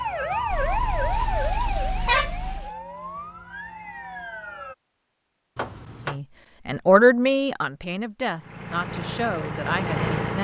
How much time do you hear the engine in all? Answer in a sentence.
You can hear the engine for 2 seconds altogether.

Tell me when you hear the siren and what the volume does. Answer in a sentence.
The siren can be heard from 0.0 to 4.8 s, getting quieter.